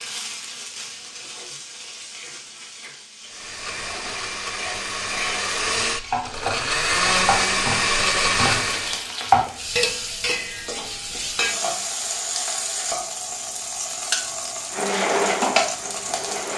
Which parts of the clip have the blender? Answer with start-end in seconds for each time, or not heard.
3.2-9.1, 14.7-16.5.